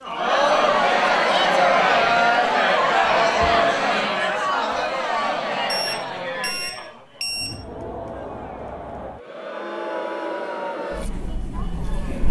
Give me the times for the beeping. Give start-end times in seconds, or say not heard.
5.7-7.8.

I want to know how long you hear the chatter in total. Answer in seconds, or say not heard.
12 s.